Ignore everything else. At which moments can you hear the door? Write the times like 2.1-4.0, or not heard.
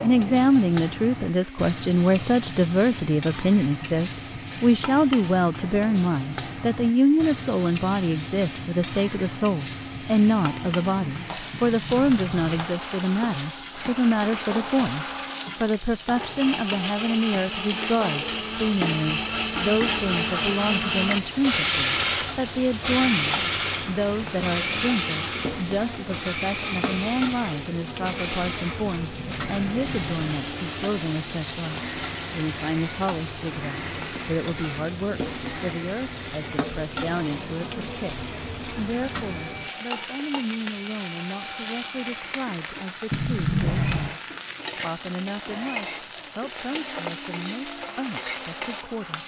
11.5-12.4, 28.8-30.3, 43.1-44.1.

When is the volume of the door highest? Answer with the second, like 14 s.
44 s.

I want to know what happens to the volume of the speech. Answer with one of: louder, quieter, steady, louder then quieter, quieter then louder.
quieter.